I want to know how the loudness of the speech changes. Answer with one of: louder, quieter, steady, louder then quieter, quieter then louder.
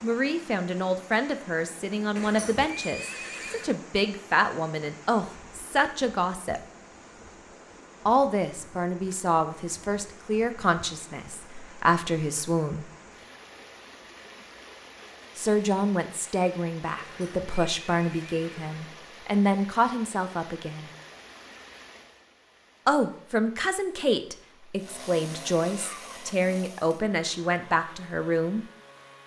steady.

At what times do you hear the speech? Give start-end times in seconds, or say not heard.
0.0-6.6, 8.1-12.8, 15.3-20.9, 22.9-28.6.